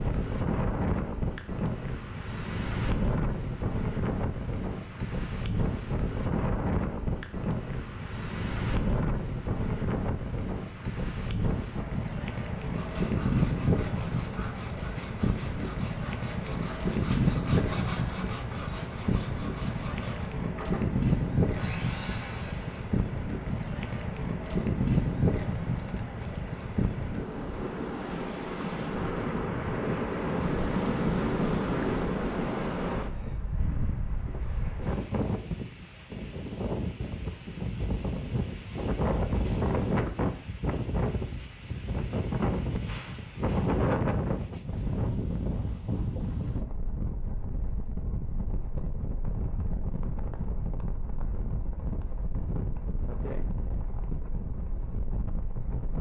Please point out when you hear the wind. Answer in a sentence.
You can hear the wind from 0.0 to 55.9 s.